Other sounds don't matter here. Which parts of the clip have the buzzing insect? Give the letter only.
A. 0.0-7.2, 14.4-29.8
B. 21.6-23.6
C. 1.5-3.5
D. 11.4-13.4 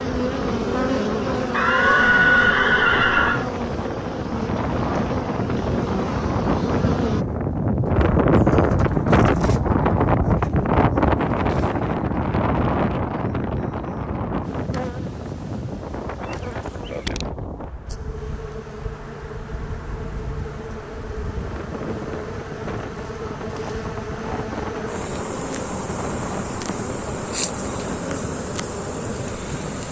A.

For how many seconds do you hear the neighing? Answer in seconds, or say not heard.
2 s.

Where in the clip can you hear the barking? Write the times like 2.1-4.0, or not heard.
not heard.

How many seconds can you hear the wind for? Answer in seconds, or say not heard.
30 s.